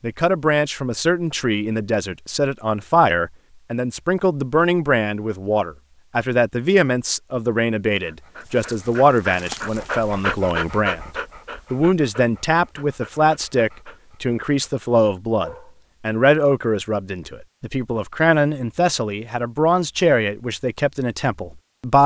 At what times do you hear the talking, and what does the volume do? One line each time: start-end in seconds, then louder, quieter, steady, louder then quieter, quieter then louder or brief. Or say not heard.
0.0-11.1 steady
11.7-22.0 steady.